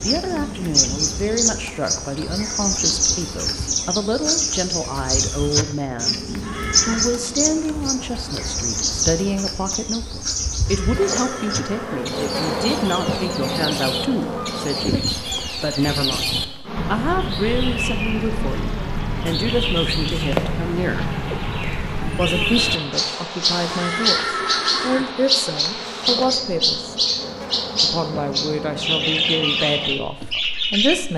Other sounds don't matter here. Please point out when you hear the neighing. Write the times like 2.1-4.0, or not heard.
6.4-7.0, 10.7-12.1, 23.6-25.1.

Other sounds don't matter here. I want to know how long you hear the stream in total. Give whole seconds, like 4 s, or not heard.
not heard.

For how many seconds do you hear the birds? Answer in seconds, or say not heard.
31 s.